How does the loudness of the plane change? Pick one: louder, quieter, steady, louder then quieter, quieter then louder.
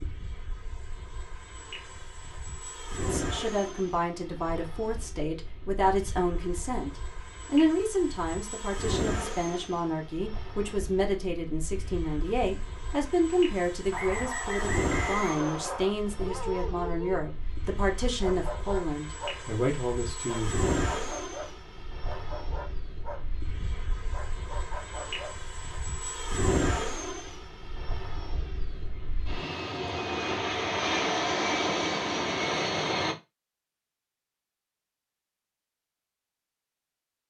louder.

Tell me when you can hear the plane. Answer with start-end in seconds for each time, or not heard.
0.0-33.1.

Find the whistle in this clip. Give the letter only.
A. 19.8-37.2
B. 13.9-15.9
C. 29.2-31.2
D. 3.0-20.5
B.